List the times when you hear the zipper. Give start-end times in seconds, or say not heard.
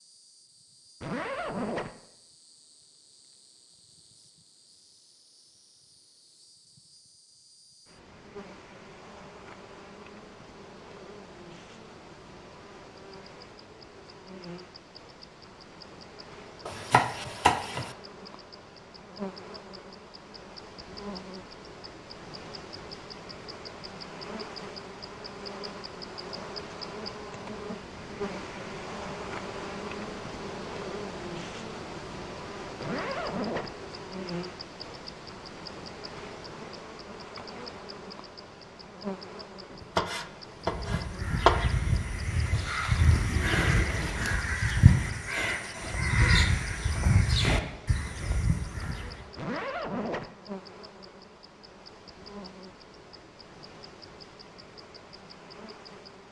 1.0-1.9, 32.8-33.7, 49.4-50.3.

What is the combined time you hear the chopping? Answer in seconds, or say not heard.
3 s.